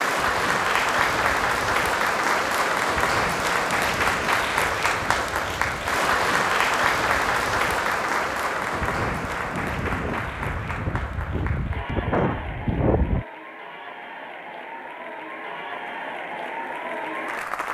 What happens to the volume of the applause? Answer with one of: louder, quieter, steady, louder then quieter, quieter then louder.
quieter.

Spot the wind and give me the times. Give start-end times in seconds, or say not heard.
0.1-13.2.